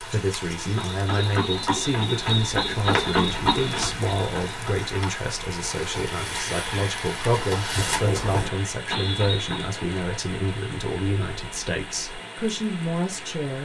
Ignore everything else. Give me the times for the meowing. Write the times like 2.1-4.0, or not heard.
not heard.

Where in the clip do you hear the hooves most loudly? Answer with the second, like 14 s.
3 s.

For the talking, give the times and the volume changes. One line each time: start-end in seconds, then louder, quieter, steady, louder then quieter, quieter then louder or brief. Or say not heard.
0.0-13.6 steady.